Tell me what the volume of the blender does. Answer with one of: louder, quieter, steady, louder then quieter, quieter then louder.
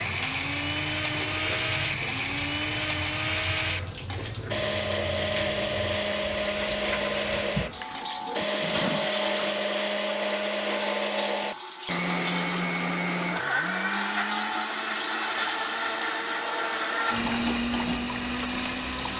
steady.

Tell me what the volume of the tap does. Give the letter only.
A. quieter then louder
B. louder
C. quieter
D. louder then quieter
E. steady
E.